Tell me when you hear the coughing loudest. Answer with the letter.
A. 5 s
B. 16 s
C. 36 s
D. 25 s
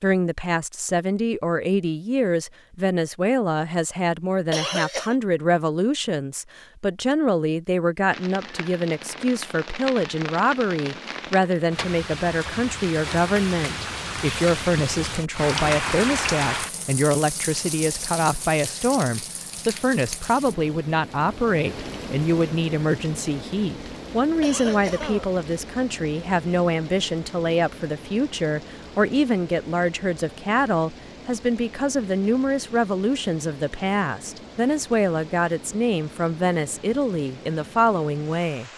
A.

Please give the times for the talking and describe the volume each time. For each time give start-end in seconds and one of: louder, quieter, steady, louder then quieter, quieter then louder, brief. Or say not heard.
0.0-38.7 steady.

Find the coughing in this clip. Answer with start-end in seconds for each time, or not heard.
4.5-5.2, 24.4-25.3.